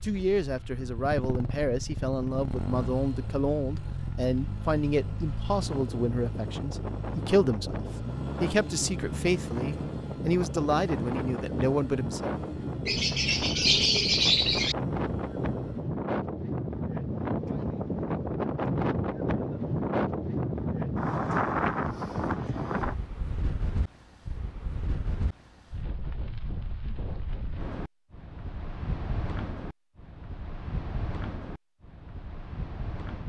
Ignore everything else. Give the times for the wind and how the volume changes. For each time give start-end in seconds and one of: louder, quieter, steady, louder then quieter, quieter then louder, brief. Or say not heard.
0.0-33.2 louder then quieter.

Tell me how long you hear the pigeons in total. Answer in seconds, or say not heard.
2 s.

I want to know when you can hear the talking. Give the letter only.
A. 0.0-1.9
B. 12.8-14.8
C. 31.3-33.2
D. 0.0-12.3
D.